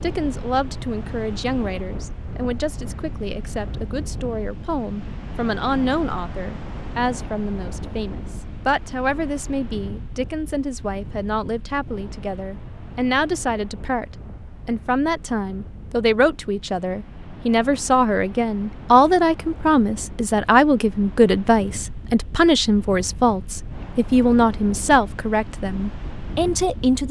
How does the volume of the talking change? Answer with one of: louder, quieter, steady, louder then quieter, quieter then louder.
louder.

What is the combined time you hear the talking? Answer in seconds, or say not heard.
27 s.